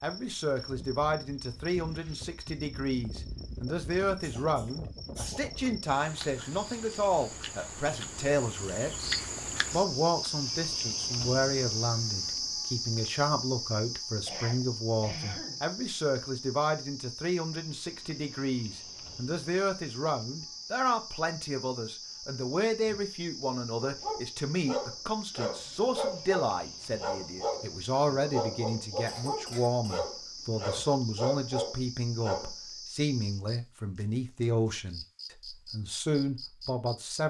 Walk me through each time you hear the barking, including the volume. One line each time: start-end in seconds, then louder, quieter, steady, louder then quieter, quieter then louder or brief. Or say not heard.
23.8-32.5 steady.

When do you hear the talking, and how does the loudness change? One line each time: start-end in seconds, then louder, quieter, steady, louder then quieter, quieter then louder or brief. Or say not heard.
0.0-37.2 steady.